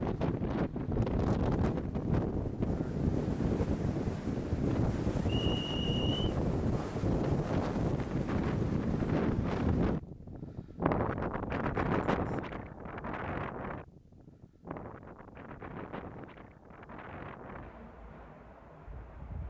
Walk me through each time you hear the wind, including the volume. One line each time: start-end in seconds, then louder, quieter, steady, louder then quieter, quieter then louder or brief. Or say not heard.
0.0-19.4 quieter.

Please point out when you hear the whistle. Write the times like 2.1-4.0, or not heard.
5.2-6.3.